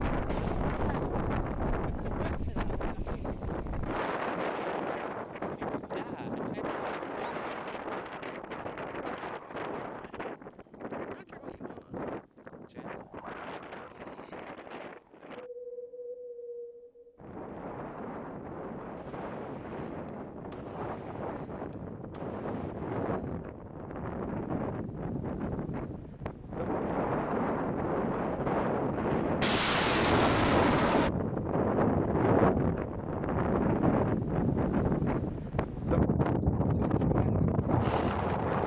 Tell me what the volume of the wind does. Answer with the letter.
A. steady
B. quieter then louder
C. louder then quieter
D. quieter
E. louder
B.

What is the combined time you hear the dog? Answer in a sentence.
The dog can't be heard in this clip.